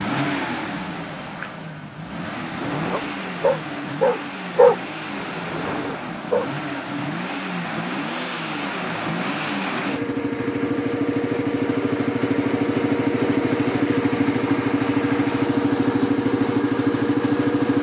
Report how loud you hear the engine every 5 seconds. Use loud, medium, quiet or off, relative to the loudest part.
medium, medium, loud, loud.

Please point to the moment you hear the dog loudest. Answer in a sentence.
The loudest moment of the dog is at 5 seconds.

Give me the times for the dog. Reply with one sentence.
You can hear the dog from 2.4 to 6.5 s.